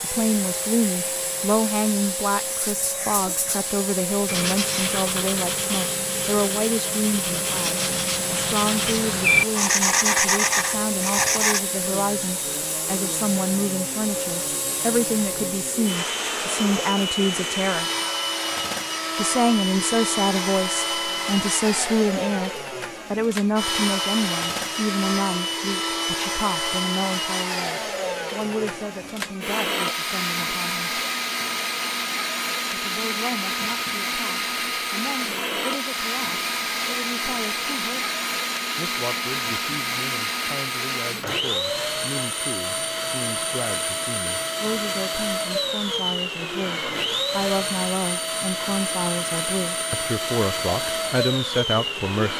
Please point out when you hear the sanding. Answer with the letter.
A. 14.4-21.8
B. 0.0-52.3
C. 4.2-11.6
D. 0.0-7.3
C.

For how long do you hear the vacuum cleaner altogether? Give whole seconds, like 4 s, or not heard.
52 s.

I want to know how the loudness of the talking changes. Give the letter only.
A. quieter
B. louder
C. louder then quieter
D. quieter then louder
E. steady
D.